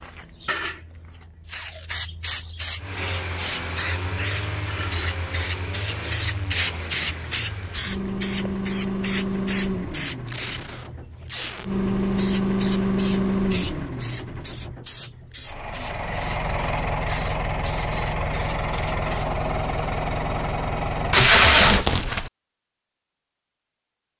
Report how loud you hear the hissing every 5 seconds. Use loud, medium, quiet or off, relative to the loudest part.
loud, loud, medium, medium, off.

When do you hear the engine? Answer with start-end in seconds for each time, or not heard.
2.8-21.4.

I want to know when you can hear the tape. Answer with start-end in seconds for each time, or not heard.
1.4-2.0, 10.2-11.7, 21.1-22.3.